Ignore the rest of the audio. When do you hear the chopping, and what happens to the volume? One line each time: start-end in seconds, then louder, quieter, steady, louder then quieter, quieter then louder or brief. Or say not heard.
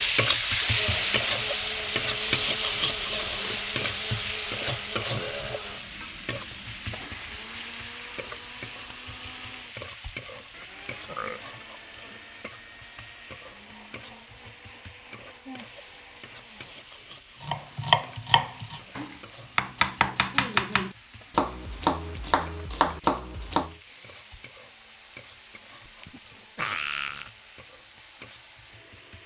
17.4-23.8 steady.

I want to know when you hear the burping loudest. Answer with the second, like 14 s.
27 s.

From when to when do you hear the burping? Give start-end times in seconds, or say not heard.
5.1-5.6, 11.1-11.7, 26.0-27.3.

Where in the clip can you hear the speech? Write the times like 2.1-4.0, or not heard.
not heard.